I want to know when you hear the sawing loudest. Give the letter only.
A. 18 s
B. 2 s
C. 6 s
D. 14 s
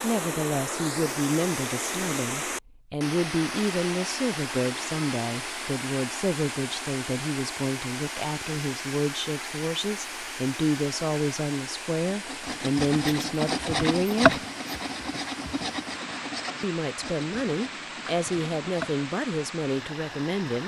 D.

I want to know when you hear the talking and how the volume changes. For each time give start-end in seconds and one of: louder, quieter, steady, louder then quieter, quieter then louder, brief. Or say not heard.
0.0-14.4 steady
16.6-20.6 steady.